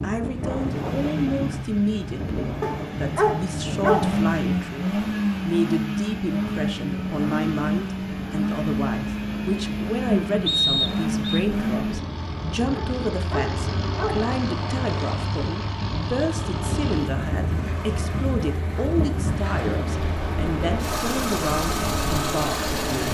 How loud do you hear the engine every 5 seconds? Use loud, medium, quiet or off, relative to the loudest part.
loud, loud, loud, medium, loud.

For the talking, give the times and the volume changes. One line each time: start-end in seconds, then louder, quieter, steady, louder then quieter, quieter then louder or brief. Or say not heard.
0.0-23.0 steady.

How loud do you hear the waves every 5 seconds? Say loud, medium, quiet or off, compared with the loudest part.
loud, medium, medium, loud, loud.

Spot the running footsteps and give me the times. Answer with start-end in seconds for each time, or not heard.
not heard.